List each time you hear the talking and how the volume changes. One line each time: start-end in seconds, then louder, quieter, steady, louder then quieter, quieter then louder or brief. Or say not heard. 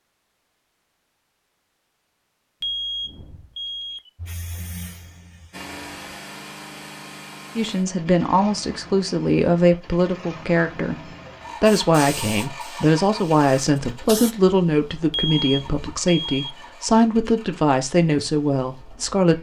7.5-19.3 steady.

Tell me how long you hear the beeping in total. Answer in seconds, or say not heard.
3 s.